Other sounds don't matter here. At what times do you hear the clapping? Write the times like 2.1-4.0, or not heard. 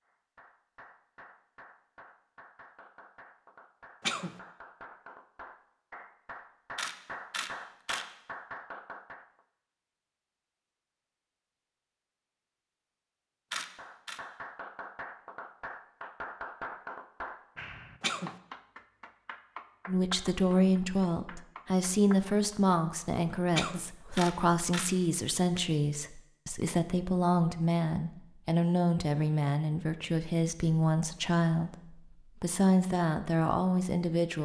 0.1-9.4, 13.8-22.6.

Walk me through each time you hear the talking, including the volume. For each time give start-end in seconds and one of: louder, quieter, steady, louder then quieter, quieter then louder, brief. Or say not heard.
19.9-34.4 steady.